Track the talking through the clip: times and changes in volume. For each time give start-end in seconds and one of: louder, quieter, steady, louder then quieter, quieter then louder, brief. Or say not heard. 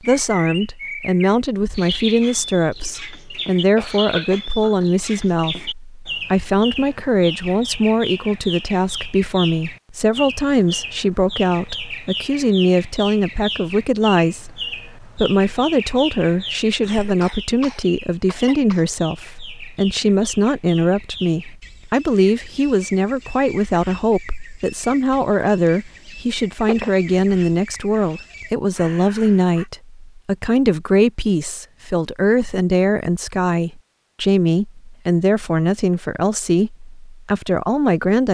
0.0-38.2 steady.